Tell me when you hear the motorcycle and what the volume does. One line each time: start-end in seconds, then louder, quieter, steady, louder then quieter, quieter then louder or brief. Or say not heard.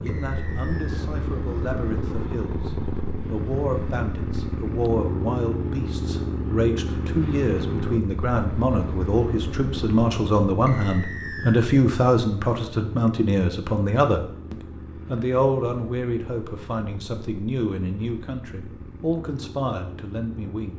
0.0-20.7 quieter.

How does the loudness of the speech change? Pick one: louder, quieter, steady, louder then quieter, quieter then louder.
louder then quieter.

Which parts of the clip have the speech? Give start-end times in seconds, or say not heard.
0.0-20.7.